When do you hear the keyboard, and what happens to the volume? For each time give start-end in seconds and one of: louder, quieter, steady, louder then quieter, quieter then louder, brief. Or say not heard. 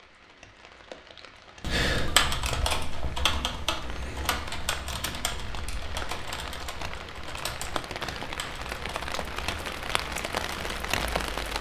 1.6-10.7 quieter.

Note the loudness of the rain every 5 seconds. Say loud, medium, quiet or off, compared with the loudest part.
quiet, medium, loud.